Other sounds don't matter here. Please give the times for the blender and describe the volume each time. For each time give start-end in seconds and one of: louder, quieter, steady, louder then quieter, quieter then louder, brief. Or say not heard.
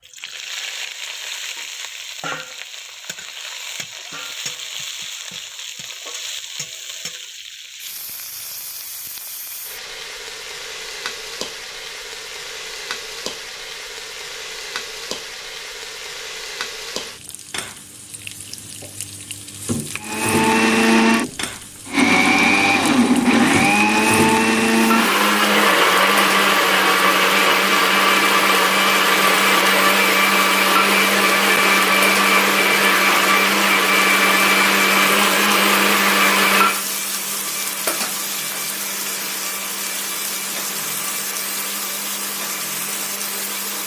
20.0-43.8 quieter.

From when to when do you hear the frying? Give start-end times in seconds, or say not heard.
0.0-43.8.